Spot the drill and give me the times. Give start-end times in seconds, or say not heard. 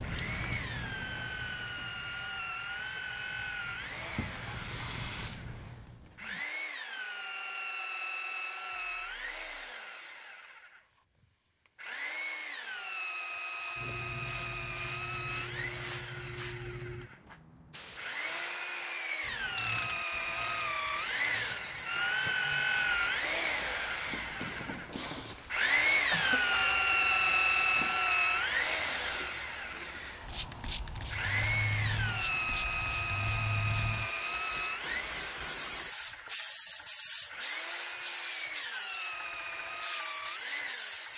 0.0-10.8, 11.8-30.1, 31.1-41.1.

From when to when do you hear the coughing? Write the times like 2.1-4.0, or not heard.
26.1-26.8.